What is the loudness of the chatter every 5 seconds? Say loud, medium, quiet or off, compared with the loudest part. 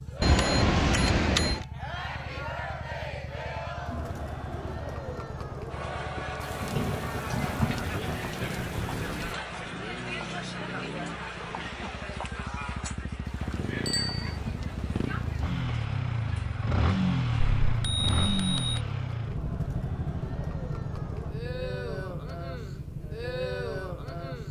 loud, loud, loud, medium, loud.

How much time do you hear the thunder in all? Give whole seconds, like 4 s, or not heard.
6 s.